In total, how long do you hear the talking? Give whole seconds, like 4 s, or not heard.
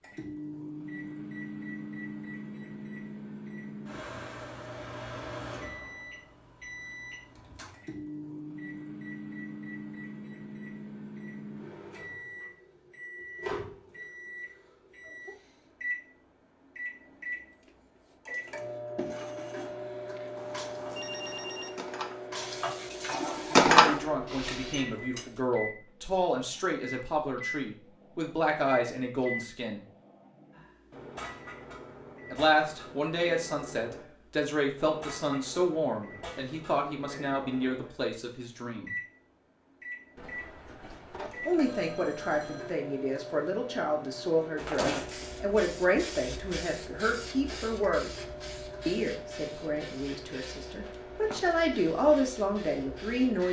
24 s.